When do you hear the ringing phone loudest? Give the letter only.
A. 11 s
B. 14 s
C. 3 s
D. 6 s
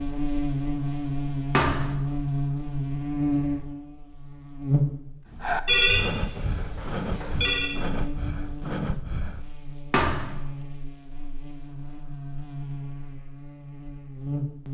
D.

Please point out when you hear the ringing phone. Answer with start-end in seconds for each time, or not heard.
5.7-7.7.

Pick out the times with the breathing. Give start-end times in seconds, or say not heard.
5.2-9.5.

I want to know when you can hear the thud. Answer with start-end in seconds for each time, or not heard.
1.5-2.0, 9.9-10.4.